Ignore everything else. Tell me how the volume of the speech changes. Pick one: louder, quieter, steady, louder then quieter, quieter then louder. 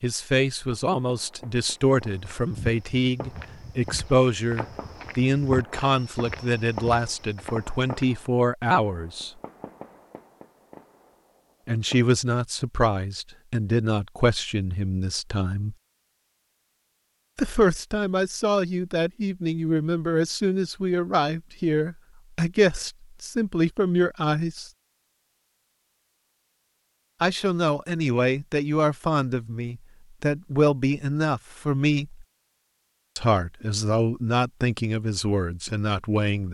steady.